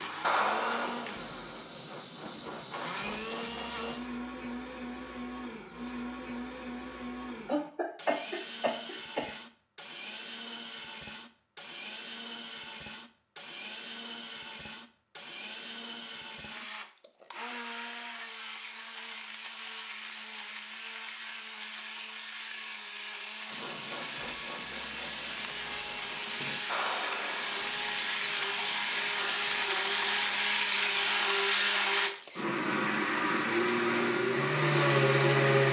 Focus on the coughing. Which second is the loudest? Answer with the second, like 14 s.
8 s.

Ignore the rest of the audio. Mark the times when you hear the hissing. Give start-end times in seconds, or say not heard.
0.2-4.0, 23.4-31.4.